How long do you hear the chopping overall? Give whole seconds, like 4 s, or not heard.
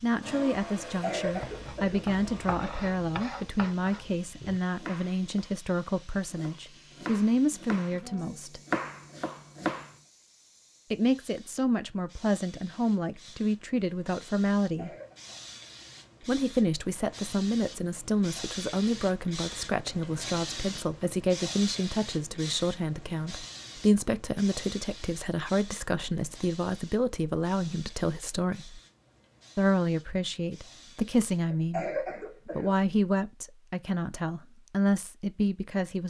9 s.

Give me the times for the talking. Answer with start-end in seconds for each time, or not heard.
0.0-8.6, 10.9-14.9, 16.2-28.8, 29.6-36.0.